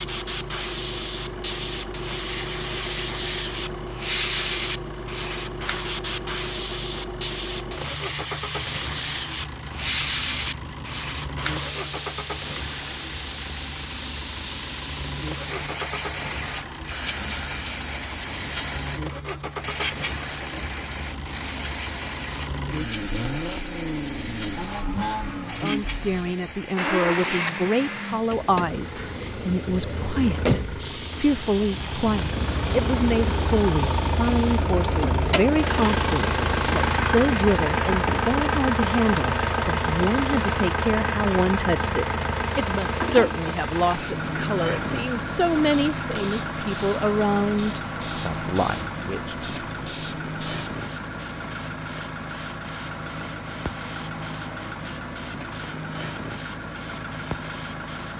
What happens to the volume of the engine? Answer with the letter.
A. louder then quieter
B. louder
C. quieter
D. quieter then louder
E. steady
A.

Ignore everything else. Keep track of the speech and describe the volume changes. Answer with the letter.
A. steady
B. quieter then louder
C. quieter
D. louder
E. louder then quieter
A.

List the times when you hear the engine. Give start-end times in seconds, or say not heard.
0.0-58.1.